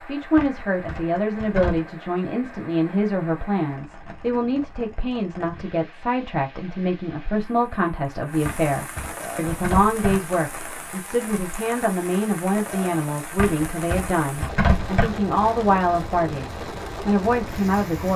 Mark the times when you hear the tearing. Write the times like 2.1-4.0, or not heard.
0.3-1.9, 8.4-10.2, 13.3-15.1.